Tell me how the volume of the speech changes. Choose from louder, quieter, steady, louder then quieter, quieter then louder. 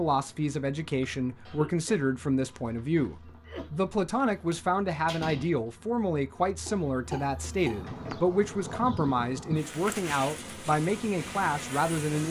steady.